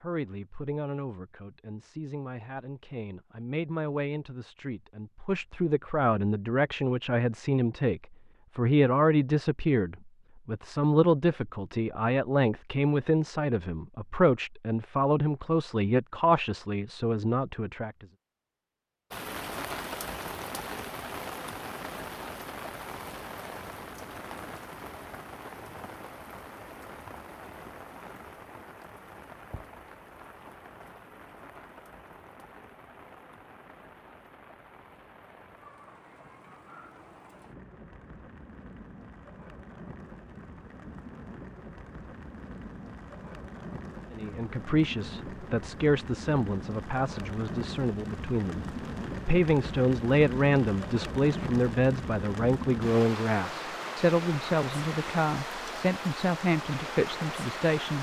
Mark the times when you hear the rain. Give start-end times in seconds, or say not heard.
19.1-57.9.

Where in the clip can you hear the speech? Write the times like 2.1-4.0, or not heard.
0.0-18.1, 44.1-57.9.